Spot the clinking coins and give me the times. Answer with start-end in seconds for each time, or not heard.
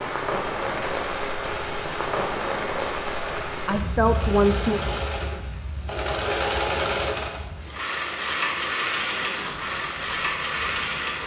not heard.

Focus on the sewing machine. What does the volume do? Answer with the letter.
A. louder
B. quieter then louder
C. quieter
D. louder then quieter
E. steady
A.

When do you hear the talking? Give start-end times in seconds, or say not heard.
3.0-4.8.